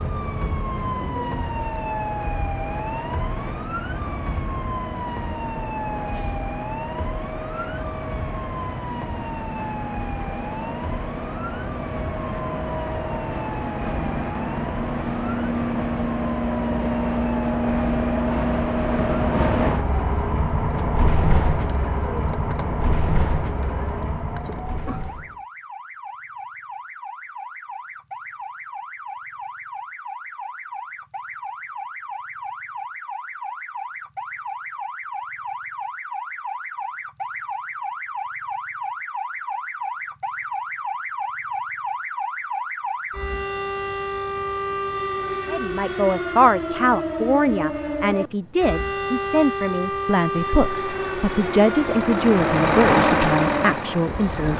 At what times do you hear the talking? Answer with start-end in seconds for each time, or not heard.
45.5-54.5.